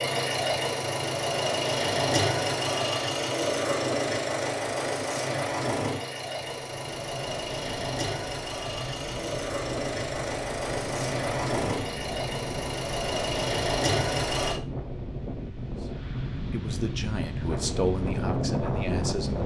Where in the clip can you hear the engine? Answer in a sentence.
The engine can be heard from 0.0 to 14.6 s.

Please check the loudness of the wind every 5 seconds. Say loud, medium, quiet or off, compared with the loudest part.
off, medium, medium, loud.